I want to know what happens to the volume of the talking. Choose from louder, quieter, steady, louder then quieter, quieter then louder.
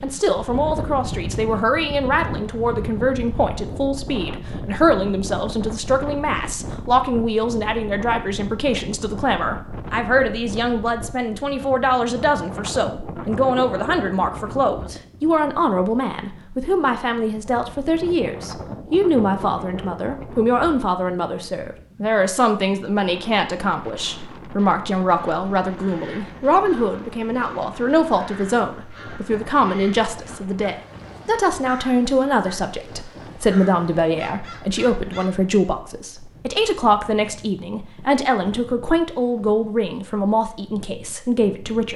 steady.